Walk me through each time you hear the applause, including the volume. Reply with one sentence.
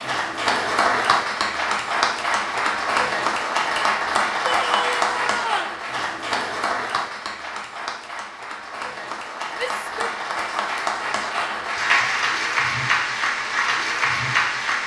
You can hear the applause from 0.0 to 14.8 s, getting quieter then louder.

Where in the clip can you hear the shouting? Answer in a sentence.
You can hear the shouting from 4.5 to 5.8 s and from 9.6 to 10.2 s.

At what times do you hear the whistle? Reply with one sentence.
You can't hear the whistle here.